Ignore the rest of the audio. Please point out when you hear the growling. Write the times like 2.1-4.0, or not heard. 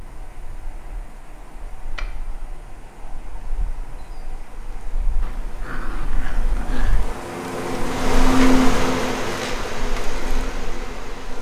5.2-7.1.